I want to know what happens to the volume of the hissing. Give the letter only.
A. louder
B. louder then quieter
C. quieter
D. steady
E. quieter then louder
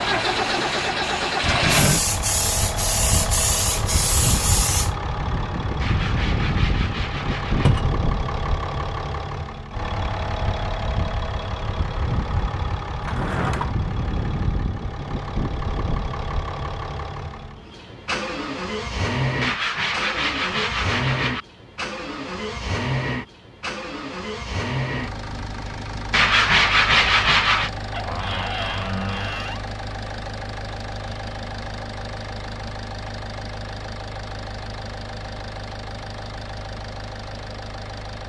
A.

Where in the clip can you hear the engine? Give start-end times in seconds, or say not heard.
0.0-38.2.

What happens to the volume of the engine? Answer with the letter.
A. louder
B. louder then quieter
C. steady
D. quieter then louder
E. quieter
E.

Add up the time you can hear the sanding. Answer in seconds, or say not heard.
6 s.